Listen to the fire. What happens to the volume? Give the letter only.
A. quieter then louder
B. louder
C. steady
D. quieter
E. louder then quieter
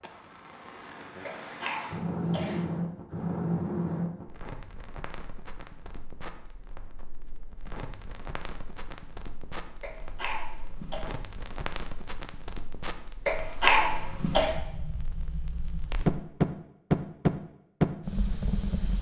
A.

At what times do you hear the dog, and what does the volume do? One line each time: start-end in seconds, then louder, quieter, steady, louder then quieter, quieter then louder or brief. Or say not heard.
not heard.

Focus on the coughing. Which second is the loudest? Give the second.
14 s.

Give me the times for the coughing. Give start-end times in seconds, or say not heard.
1.2-2.6, 9.8-11.1, 13.2-14.6.